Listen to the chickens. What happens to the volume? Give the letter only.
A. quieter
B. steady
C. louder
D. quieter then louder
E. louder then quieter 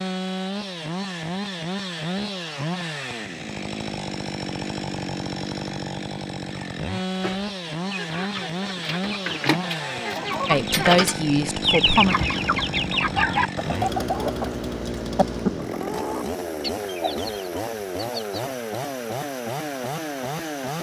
E.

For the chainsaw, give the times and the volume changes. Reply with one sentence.
You can hear the chainsaw from 0.0 to 20.7 s, at a steady volume.